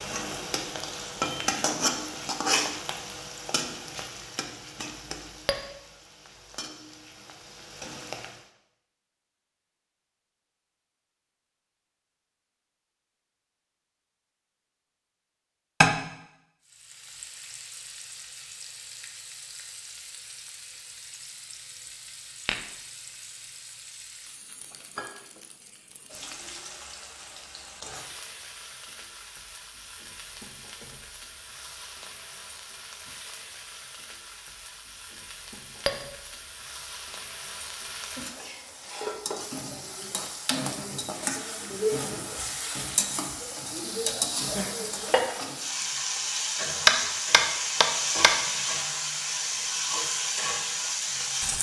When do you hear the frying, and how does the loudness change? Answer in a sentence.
The frying can be heard from 0.0 to 8.4 s, getting quieter; and from 16.6 to 51.5 s, getting louder.